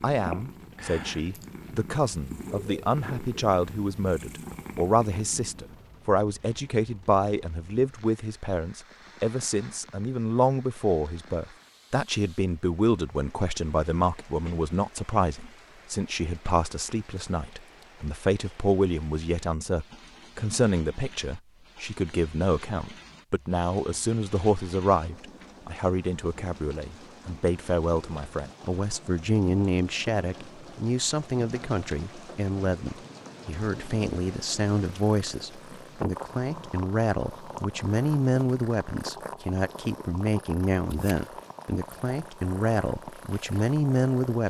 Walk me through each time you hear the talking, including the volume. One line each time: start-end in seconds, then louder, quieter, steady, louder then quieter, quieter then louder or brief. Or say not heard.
0.0-44.4 steady.